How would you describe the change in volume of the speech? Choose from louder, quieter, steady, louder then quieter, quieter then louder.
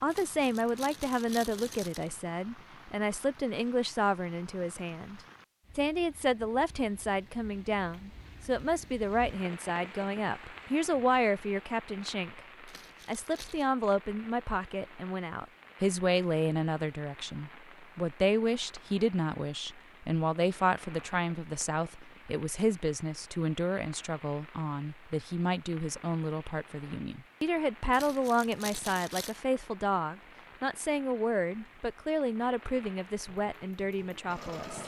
steady.